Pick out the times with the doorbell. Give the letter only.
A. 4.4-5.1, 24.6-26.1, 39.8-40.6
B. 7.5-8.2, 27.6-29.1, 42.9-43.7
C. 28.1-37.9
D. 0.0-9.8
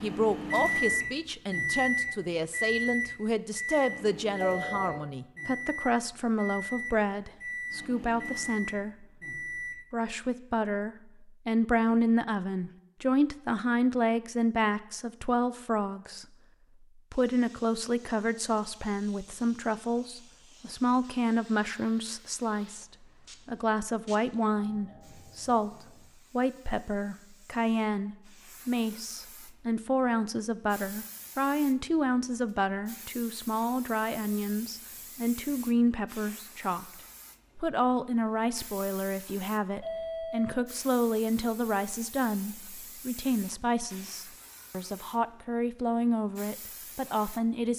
A.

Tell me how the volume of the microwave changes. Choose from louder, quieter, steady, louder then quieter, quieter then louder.
quieter.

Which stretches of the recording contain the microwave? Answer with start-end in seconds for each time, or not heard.
0.0-9.8.